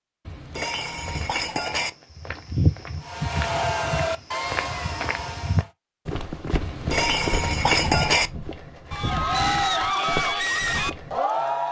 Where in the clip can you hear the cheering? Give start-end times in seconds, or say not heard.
3.0-5.7, 8.9-11.6.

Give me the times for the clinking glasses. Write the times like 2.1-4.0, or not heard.
0.2-1.9, 6.6-8.3.